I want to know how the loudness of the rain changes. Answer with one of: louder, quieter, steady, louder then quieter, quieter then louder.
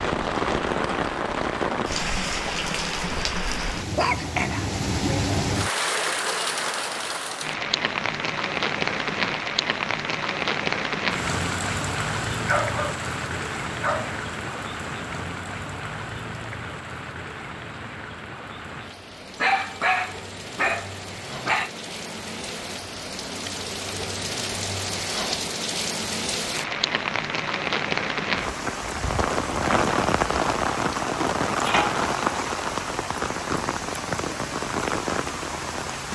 quieter then louder.